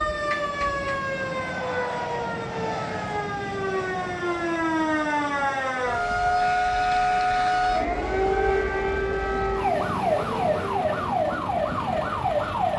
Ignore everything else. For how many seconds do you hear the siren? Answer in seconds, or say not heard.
13 s.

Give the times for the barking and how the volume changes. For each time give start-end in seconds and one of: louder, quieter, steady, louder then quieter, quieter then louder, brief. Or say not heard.
not heard.